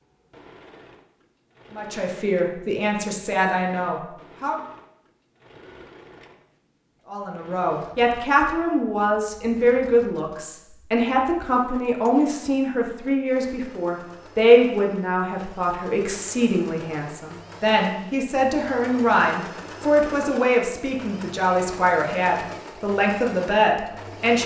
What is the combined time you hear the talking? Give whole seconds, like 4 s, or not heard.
20 s.